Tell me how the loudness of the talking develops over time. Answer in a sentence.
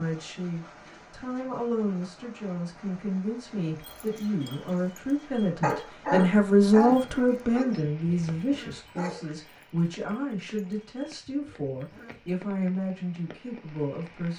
The loudness of the talking goes up, then down.